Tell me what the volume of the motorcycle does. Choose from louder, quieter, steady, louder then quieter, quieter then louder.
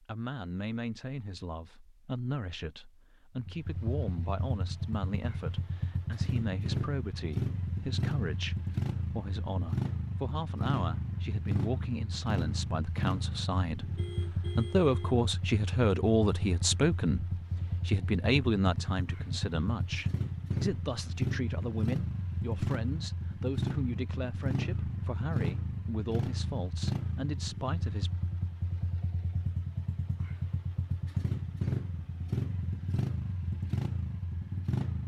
steady.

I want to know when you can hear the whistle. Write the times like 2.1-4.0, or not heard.
not heard.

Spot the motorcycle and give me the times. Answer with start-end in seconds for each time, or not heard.
3.4-35.0.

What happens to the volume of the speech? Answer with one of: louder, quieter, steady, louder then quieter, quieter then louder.
louder then quieter.